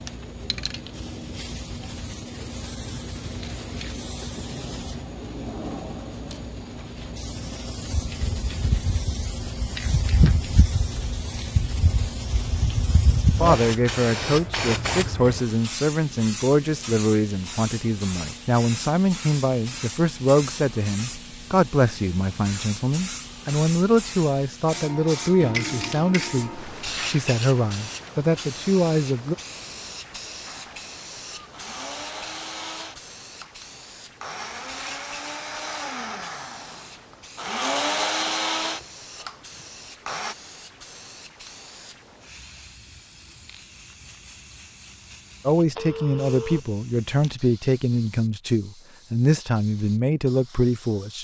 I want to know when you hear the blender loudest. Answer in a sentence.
The loudest moment of the blender is at 38 seconds.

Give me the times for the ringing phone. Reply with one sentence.
The ringing phone can be heard from 45.8 to 46.6 s.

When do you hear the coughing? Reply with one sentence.
The coughing can't be heard in this clip.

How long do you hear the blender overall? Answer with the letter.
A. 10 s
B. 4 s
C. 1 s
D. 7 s
A.